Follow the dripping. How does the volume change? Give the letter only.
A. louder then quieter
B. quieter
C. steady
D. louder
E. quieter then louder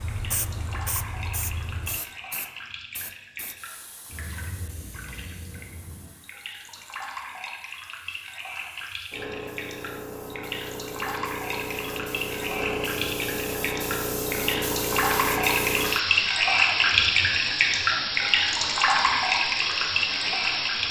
D.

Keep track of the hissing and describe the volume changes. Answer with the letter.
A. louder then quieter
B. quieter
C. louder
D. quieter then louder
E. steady
D.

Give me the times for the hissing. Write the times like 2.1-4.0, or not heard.
0.0-20.8.